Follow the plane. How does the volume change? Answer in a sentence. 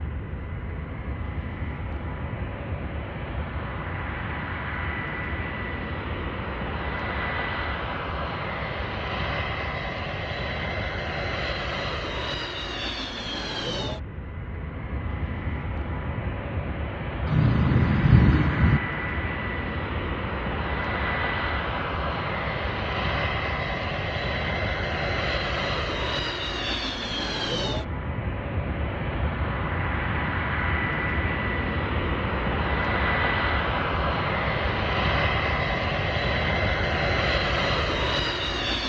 The loudness of the plane goes up.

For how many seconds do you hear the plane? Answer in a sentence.
The plane can be heard for 39 seconds in total.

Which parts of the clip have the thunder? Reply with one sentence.
The thunder can be heard from 17.2 to 18.8 s.